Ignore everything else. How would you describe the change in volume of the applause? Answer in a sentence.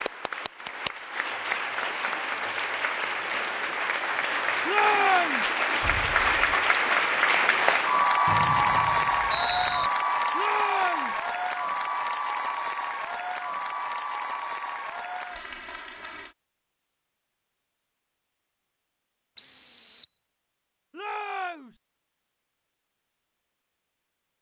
The loudness of the applause goes up, then down.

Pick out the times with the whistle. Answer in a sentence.
You can hear the whistle from 8.2 to 9.9 s and from 19.4 to 20.1 s.